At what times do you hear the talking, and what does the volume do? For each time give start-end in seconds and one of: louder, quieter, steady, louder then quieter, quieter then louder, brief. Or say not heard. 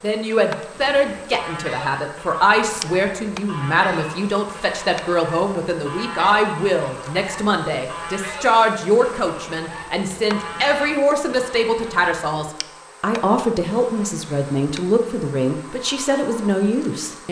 0.0-17.2 steady.